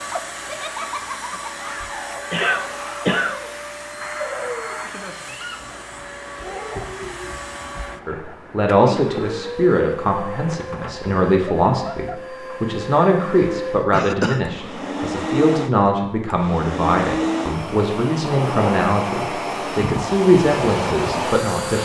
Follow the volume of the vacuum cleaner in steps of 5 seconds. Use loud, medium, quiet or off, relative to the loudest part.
medium, medium, medium, loud, loud.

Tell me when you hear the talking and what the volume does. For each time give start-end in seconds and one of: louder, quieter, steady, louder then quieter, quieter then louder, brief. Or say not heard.
8.1-21.8 steady.